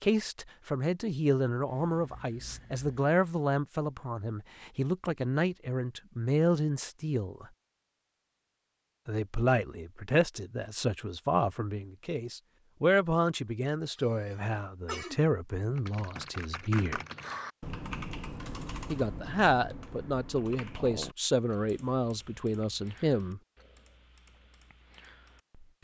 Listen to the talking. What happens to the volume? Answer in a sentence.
The volume of the talking stays about the same.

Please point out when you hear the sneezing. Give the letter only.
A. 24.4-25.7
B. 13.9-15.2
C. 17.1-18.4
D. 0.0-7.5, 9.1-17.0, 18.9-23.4
B.